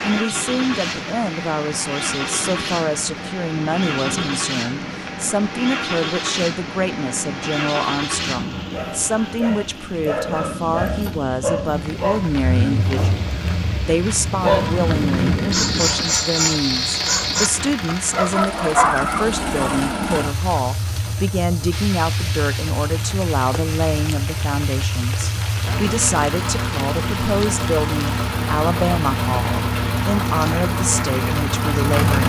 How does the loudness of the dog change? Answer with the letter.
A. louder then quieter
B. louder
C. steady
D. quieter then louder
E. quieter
B.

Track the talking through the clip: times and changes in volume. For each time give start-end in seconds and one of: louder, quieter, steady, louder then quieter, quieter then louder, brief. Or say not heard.
0.0-32.2 steady.